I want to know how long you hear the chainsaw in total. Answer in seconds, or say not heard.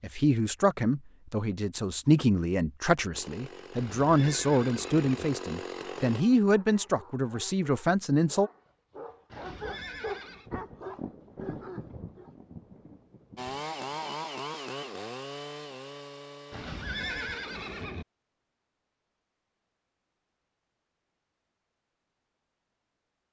8 s.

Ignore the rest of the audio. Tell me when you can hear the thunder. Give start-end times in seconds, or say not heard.
10.4-14.0.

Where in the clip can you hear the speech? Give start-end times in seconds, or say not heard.
0.0-8.5.